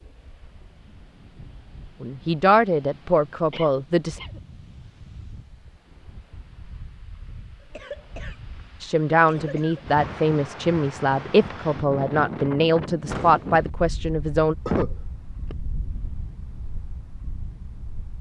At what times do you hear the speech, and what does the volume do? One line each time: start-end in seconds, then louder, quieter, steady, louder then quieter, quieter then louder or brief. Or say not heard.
2.0-4.2 brief
8.8-14.6 steady.